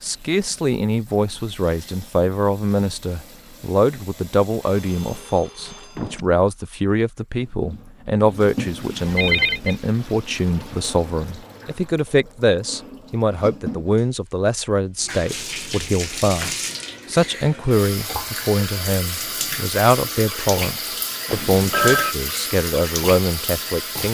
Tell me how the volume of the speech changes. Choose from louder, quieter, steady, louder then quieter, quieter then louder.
steady.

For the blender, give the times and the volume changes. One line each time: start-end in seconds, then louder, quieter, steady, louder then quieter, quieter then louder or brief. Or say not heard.
not heard.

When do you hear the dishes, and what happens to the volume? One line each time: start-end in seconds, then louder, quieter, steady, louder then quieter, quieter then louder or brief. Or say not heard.
not heard.